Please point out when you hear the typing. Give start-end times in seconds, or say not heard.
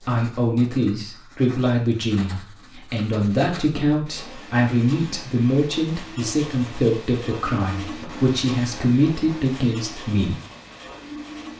not heard.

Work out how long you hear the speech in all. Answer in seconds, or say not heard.
10 s.